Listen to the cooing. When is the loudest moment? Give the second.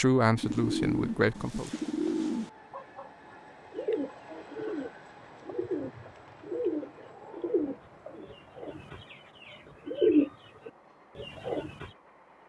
10 s.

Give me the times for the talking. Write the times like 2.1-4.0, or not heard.
0.0-1.7.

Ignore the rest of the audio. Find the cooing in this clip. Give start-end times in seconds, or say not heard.
0.3-11.9.